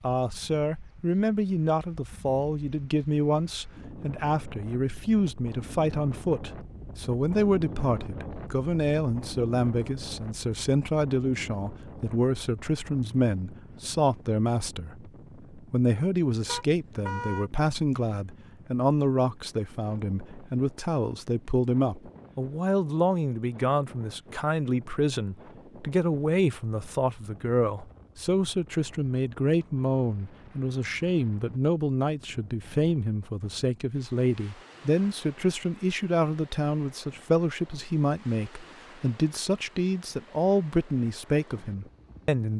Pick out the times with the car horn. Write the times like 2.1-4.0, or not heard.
16.4-17.5.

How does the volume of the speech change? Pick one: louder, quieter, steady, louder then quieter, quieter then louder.
steady.